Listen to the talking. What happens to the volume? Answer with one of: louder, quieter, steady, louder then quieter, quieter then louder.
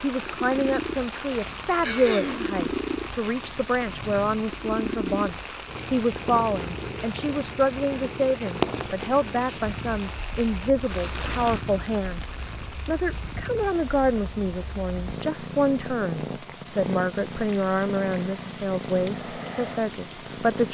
steady.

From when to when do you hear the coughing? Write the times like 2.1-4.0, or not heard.
1.8-2.5.